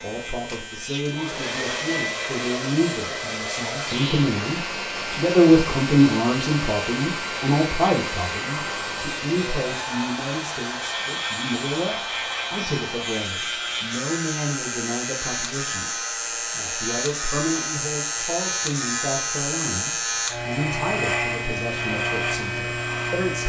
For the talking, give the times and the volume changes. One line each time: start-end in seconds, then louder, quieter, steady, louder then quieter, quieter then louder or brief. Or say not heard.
0.0-23.4 louder then quieter.